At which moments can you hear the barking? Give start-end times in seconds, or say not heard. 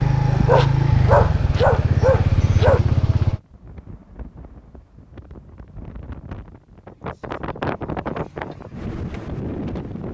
0.0-2.8.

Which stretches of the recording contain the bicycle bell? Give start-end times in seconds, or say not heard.
not heard.